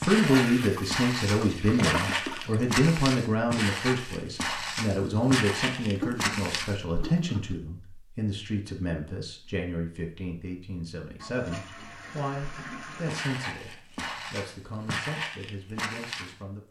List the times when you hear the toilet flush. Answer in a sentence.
The toilet flush can be heard from 0.2 to 2.6 s, from 5.8 to 7.5 s and from 11.2 to 13.2 s.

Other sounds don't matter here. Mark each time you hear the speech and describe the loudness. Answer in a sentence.
The speech can be heard from 0.0 to 16.6 s, getting quieter.